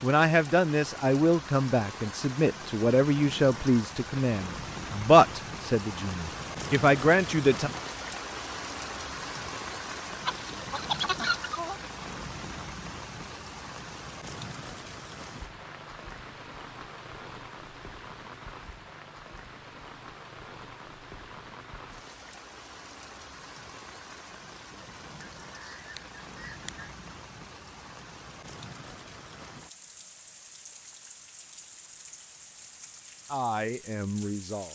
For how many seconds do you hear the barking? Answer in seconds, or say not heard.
not heard.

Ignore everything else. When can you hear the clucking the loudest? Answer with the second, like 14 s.
11 s.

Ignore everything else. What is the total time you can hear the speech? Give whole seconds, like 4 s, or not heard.
9 s.